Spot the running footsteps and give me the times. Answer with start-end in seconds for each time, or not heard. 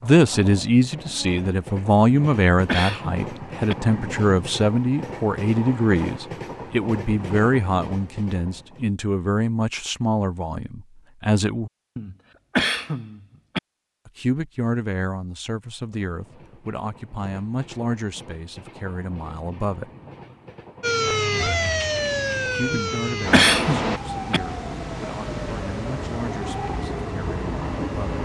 not heard.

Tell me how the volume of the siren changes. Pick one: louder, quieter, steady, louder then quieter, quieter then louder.
quieter.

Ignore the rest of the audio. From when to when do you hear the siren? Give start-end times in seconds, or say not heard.
20.8-28.2.